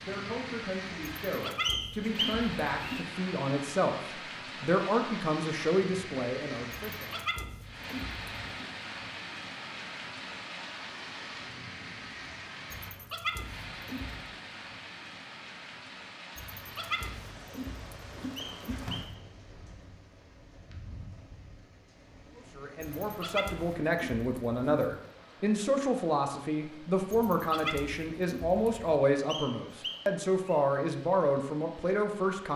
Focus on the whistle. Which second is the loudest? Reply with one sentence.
The loudest moment of the whistle is at 2 seconds.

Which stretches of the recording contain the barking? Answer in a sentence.
You can hear the barking from 1.2 to 3.0 s, from 6.7 to 8.7 s, from 12.7 to 14.2 s, from 16.4 to 19.1 s, from 22.8 to 25.0 s and from 27.1 to 28.8 s.